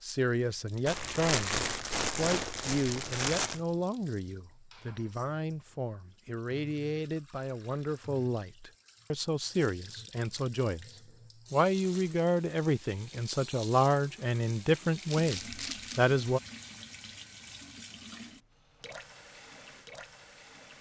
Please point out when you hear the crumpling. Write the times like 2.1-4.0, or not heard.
0.8-3.6, 11.8-12.2, 15.1-16.1.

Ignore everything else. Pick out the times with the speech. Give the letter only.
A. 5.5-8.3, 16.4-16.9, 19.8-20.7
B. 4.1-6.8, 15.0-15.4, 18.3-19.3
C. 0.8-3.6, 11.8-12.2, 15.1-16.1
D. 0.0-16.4
D.